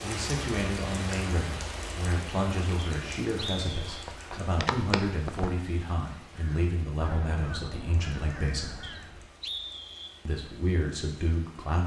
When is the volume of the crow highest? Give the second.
5 s.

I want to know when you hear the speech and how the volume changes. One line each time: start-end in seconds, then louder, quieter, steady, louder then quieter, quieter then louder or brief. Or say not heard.
0.0-8.8 steady
10.2-11.8 brief.